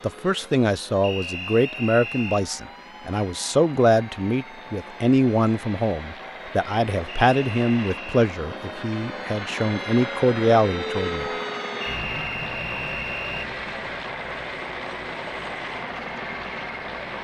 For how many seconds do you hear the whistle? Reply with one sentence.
You can hear the whistle for 4 seconds altogether.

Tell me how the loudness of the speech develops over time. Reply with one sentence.
The loudness of the speech stays about the same.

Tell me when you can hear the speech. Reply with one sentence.
You can hear the speech from 0.0 to 11.3 s.